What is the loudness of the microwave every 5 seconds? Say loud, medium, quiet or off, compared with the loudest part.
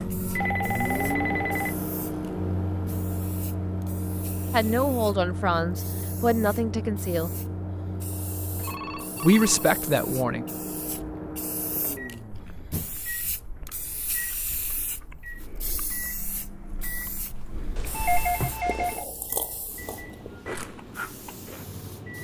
loud, medium, medium, medium, quiet.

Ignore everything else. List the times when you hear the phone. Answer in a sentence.
You can hear the phone from 0.3 to 1.8 s, from 8.6 to 9.7 s and from 17.8 to 19.1 s.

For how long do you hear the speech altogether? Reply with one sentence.
The speech can be heard for 4 seconds in total.